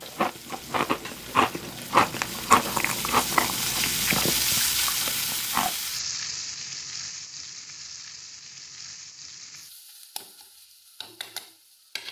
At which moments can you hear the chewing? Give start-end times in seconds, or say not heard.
0.0-5.7.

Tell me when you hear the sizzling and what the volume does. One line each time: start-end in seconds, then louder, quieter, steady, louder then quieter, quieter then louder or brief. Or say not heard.
0.0-12.0 louder then quieter.